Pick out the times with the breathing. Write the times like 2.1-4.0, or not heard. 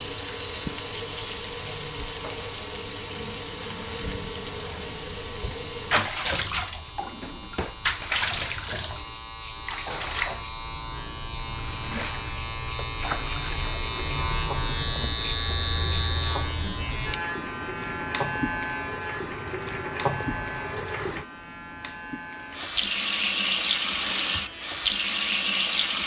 not heard.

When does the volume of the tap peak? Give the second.
25 s.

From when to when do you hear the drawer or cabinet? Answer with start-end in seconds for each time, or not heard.
7.0-7.8.